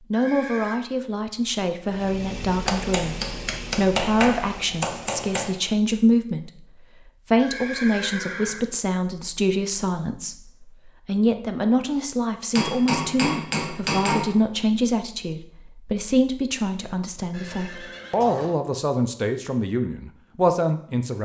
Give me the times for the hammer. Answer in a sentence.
The hammer can be heard from 2.6 to 5.5 s and from 12.6 to 14.3 s.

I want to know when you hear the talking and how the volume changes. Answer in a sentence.
You can hear the talking from 0.1 to 21.2 s, at a steady volume.